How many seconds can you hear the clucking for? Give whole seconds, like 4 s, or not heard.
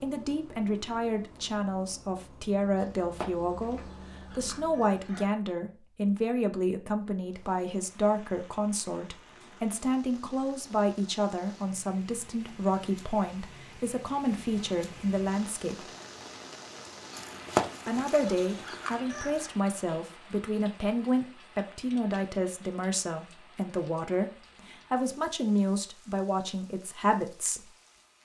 5 s.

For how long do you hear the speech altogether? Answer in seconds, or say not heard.
26 s.